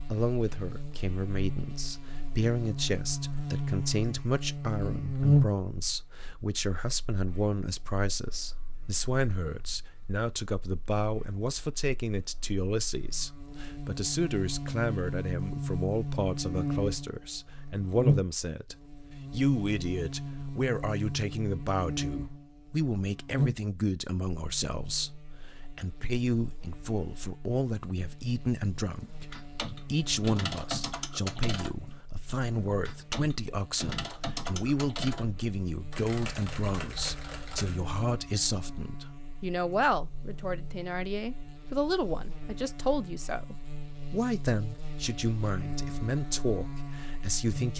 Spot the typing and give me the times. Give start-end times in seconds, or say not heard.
29.0-37.9.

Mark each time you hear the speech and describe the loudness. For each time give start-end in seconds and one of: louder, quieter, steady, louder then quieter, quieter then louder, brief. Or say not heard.
0.1-47.7 steady.